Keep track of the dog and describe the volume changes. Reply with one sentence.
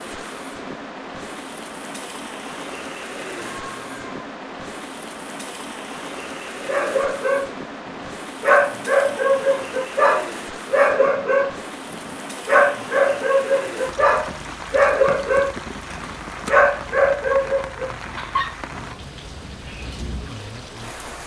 The loudness of the dog stays about the same.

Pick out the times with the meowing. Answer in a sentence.
You can hear the meowing from 3.4 to 4.2 s.